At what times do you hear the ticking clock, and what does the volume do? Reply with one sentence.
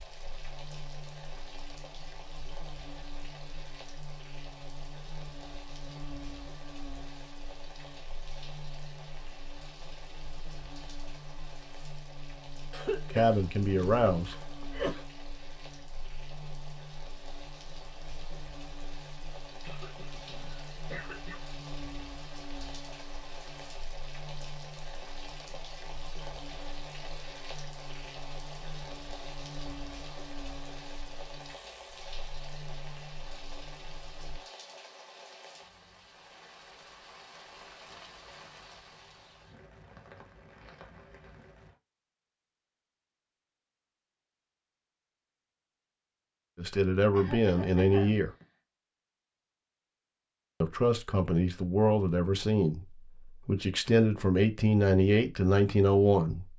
You can't hear the ticking clock here.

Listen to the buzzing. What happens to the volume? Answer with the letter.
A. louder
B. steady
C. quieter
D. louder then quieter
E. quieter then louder
B.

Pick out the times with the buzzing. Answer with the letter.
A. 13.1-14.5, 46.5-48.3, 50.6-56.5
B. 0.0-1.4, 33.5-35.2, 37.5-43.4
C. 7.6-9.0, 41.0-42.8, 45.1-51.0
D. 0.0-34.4
D.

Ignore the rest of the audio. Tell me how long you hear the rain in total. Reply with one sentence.
You can hear the rain for 42 seconds altogether.